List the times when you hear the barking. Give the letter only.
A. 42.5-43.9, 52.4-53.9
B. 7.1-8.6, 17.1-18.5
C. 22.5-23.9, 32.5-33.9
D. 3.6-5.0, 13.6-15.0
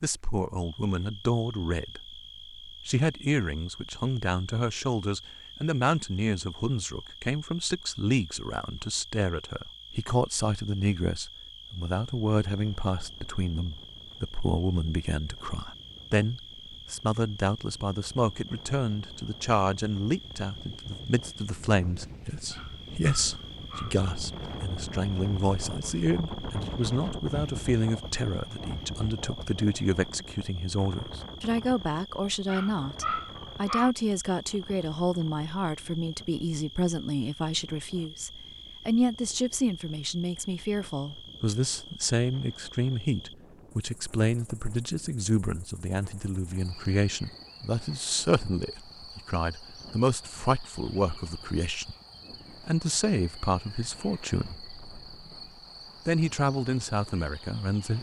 C.